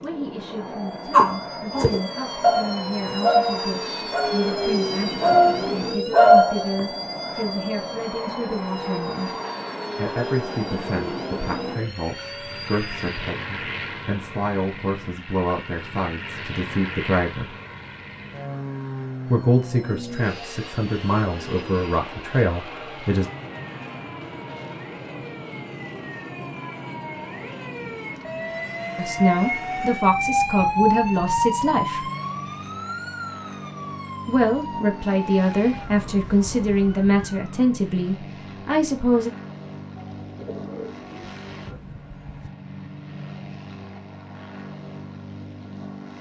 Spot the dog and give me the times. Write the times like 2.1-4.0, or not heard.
1.1-6.8.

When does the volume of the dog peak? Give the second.
6 s.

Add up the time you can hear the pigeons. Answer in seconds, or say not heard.
2 s.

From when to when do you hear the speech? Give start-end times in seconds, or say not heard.
0.0-9.3, 9.9-17.6, 19.3-23.3, 28.9-32.1, 34.2-39.3.